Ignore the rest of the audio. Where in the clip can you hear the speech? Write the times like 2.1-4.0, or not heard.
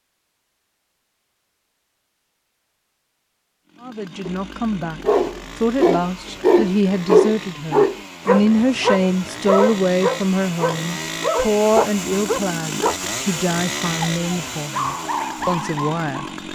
3.8-16.5.